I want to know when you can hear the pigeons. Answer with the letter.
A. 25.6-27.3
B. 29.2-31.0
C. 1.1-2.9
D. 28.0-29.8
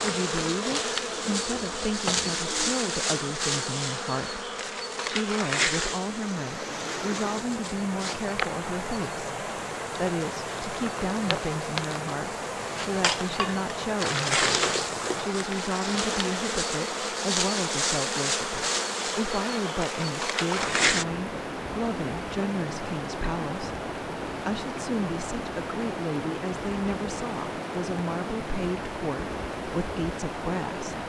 C.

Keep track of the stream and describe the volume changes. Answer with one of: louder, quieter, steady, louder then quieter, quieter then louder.
steady.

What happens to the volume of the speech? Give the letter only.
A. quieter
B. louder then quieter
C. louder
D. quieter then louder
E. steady
E.